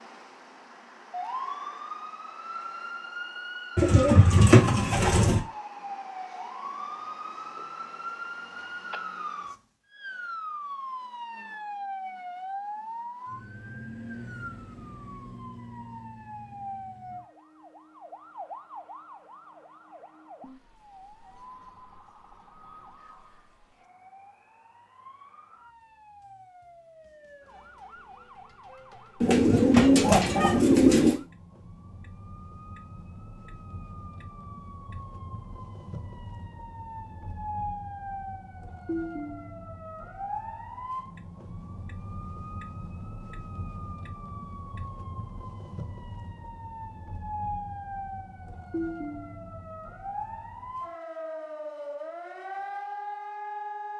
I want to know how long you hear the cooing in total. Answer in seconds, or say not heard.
4 s.